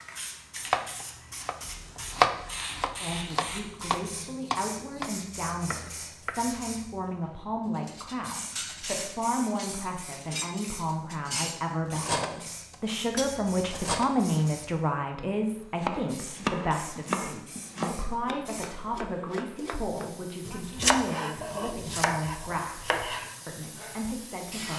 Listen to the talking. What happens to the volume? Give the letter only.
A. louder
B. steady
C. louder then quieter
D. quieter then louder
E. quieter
C.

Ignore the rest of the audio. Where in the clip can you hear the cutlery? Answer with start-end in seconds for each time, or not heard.
7.8-14.1.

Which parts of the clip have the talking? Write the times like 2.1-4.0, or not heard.
3.0-24.7.